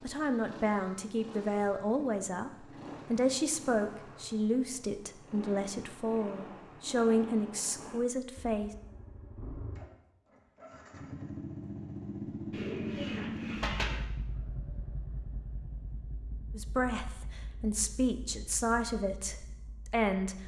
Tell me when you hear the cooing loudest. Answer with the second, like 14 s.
14 s.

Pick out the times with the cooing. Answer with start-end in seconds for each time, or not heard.
12.5-14.0.